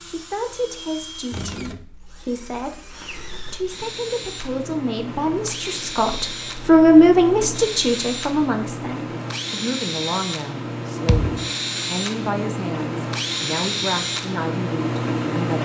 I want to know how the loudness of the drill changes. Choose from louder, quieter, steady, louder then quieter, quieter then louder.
louder.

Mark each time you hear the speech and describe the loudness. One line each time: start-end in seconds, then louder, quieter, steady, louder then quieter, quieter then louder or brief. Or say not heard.
0.0-15.6 louder then quieter.